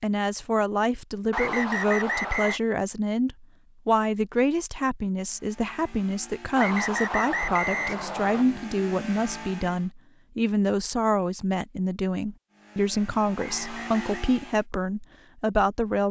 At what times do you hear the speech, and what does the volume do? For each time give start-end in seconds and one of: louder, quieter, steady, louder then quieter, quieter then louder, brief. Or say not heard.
0.0-16.0 steady.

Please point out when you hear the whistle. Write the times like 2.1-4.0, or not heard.
1.3-2.6, 6.5-8.4, 13.3-14.2.